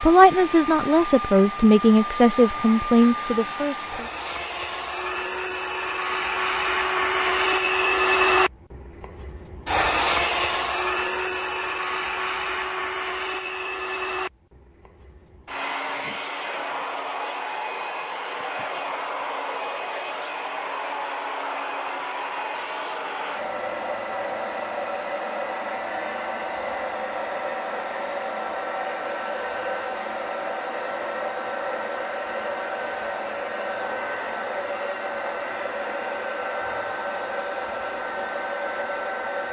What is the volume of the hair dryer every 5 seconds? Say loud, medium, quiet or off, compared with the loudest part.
medium, loud, loud, medium, medium, medium, medium, medium.